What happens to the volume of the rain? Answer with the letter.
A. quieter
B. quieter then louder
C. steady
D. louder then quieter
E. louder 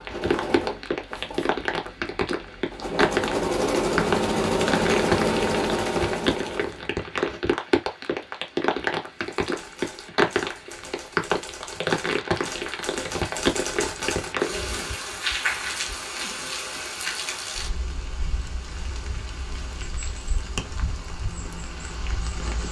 A.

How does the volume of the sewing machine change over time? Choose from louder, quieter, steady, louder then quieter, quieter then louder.
quieter then louder.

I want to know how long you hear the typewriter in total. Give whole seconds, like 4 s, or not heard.
6 s.